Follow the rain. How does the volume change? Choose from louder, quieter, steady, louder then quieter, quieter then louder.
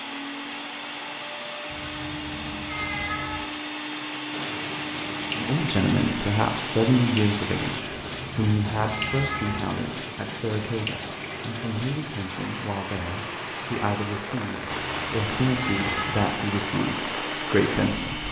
steady.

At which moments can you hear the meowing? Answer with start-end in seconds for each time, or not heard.
1.7-3.4, 7.9-9.6, 14.6-16.2.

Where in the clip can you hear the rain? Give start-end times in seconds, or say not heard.
4.3-18.2.